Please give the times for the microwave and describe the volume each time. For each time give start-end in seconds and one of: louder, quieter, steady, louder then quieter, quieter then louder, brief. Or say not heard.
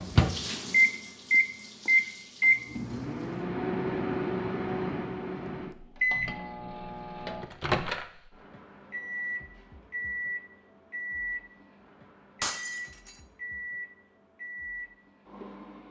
0.0-15.8 quieter.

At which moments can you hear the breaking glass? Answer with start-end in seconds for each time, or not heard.
12.4-13.2.